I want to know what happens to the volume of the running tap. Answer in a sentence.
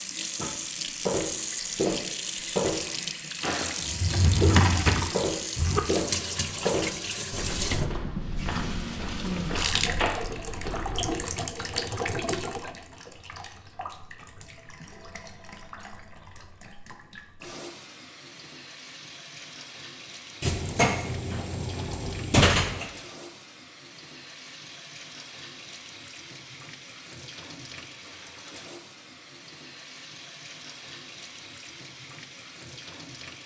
The loudness of the running tap goes down.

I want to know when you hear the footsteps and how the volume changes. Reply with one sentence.
The footsteps can be heard from 0.3 to 11.2 s, getting quieter.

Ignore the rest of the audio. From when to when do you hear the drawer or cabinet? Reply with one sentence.
You can hear the drawer or cabinet from 3.8 to 5.8 s and from 20.4 to 22.9 s.